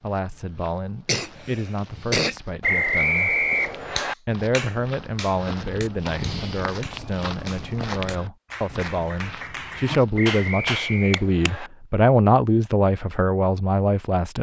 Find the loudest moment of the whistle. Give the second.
3 s.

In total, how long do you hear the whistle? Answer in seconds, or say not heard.
3 s.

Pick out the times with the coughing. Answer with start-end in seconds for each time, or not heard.
1.1-2.4.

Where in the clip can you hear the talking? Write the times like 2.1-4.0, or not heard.
0.0-3.5, 4.0-14.3.